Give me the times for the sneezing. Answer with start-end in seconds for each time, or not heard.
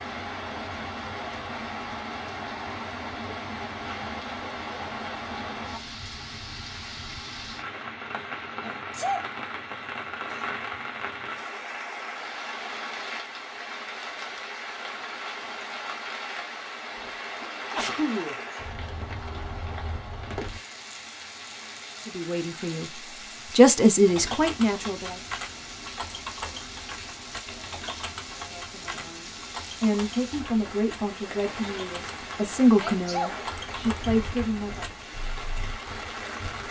8.6-9.2, 16.9-18.4, 32.8-33.5.